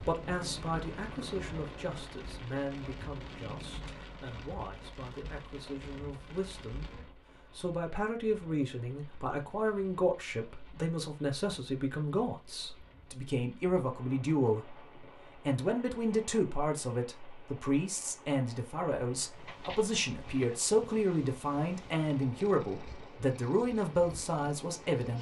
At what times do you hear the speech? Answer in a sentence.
The speech can be heard from 0.0 to 14.8 s and from 15.4 to 25.1 s.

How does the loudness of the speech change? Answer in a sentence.
The loudness of the speech goes up.